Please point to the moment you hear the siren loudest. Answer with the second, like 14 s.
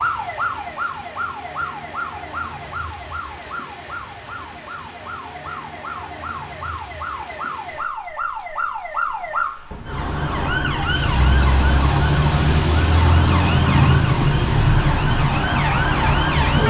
14 s.